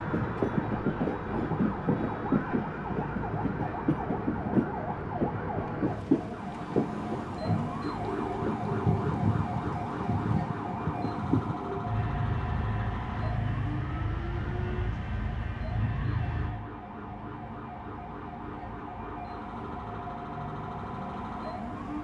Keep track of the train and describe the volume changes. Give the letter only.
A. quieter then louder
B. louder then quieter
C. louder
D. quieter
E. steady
D.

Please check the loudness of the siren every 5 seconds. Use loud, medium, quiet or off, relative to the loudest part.
loud, loud, loud, medium, loud.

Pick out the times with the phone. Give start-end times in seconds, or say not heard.
8.1-9.1.